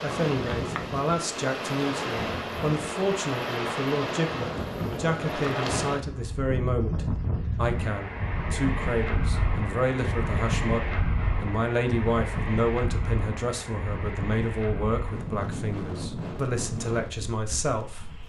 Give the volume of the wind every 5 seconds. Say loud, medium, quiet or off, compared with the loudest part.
loud, loud, loud, medium.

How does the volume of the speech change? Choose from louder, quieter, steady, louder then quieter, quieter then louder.
steady.